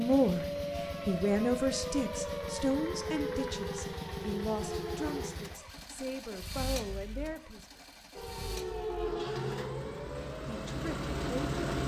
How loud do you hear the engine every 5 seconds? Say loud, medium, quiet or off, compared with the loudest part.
medium, medium, loud.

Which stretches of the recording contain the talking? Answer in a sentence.
The talking can be heard from 0.0 to 7.7 s and from 10.4 to 11.6 s.